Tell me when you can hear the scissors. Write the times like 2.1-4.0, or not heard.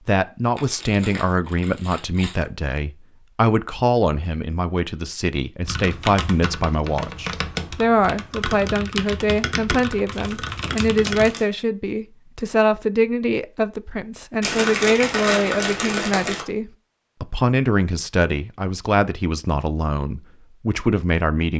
not heard.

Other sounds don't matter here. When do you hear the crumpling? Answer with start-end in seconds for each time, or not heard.
0.6-2.4, 10.1-11.4, 14.4-16.4.